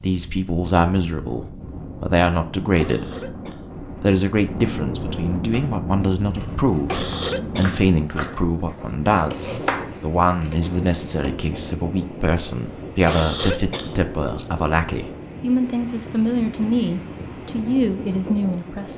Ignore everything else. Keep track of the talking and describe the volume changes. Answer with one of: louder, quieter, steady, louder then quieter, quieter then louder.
steady.